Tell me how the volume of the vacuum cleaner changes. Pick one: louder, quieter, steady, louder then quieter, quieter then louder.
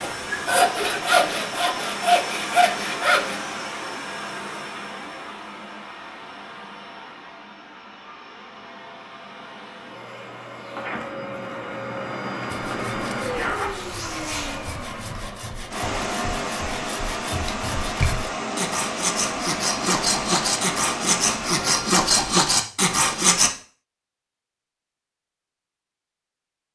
quieter then louder.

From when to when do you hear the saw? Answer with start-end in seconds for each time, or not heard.
0.0-3.4, 12.4-23.5.